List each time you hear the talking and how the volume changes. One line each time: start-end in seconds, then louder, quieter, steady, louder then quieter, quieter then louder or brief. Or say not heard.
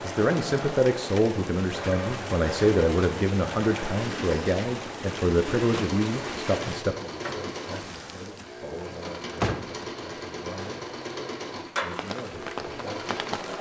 0.0-10.8 quieter
11.8-13.3 brief.